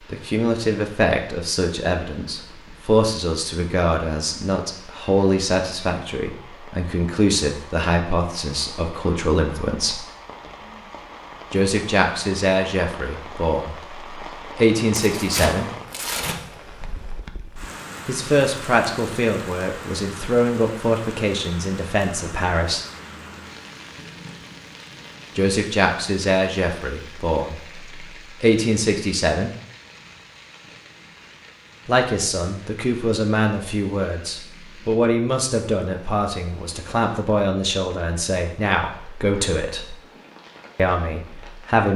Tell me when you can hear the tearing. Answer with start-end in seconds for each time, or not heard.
14.9-16.4.